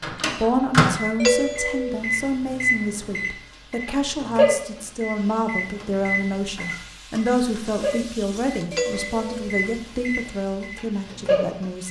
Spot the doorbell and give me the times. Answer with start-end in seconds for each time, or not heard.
1.2-2.0, 8.7-9.5.